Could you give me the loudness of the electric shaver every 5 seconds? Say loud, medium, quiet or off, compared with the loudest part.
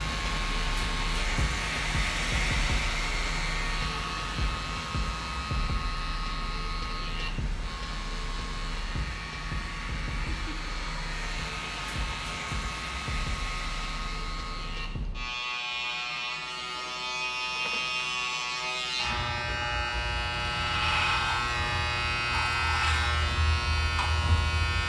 medium, medium, medium, loud, loud.